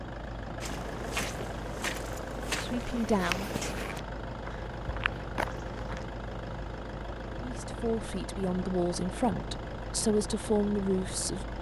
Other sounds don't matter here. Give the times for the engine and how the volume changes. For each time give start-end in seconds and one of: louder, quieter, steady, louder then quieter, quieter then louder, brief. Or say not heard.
0.0-11.5 steady.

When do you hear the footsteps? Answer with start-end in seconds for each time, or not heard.
0.6-6.1.